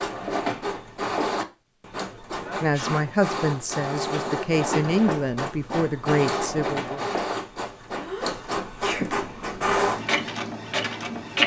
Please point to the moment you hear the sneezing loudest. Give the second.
9 s.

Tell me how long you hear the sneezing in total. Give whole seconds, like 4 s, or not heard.
2 s.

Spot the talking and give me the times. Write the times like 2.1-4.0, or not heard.
2.6-7.0.